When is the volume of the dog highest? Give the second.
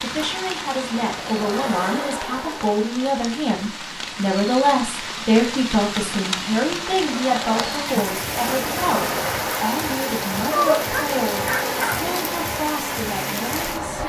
11 s.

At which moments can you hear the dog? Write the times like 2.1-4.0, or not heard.
10.5-12.1.